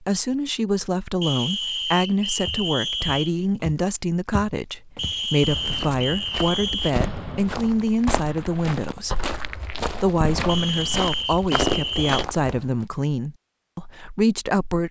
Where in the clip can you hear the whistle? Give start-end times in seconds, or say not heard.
1.2-3.3, 5.0-7.0, 10.4-12.2.